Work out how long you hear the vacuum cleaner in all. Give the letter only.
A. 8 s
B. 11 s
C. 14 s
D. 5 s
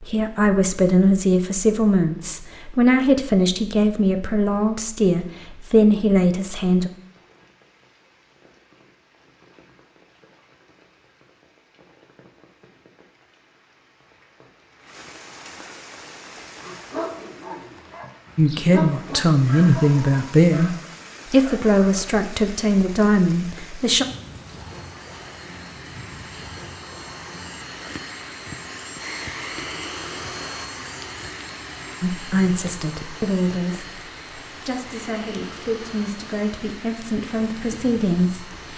C.